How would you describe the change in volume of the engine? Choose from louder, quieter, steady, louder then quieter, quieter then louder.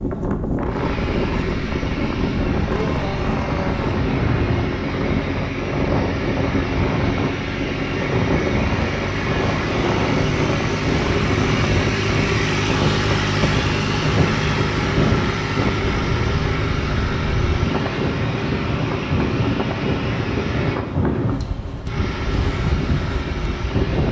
louder then quieter.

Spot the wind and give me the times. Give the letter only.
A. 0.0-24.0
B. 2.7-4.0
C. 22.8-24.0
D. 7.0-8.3
A.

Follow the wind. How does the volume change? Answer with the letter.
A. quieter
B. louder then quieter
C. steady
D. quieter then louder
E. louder
C.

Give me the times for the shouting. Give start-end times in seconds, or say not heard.
2.7-4.0.